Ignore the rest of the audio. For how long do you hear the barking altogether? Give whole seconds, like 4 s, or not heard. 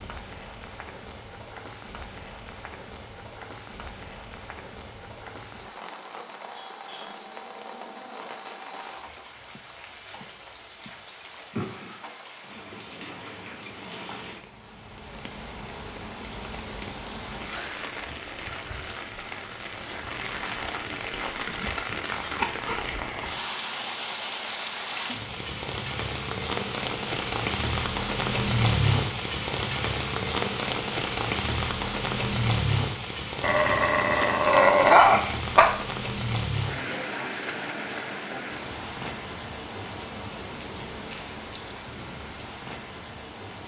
2 s.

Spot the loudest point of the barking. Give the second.
35 s.